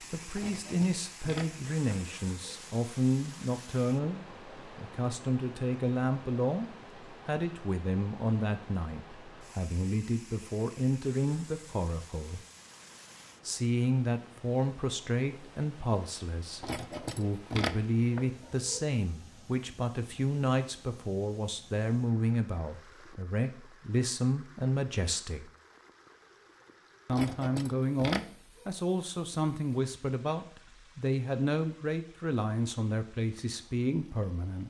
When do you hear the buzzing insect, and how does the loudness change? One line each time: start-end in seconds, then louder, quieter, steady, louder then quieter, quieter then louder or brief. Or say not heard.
not heard.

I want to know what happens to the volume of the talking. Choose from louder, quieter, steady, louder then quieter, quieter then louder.
steady.